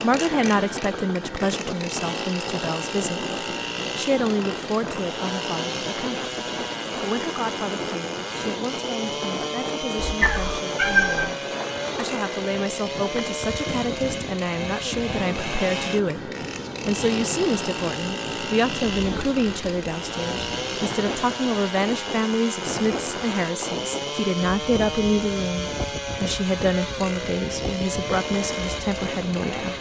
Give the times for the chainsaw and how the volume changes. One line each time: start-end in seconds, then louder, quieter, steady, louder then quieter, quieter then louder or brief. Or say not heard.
0.0-29.7 steady.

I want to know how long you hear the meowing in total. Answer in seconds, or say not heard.
2 s.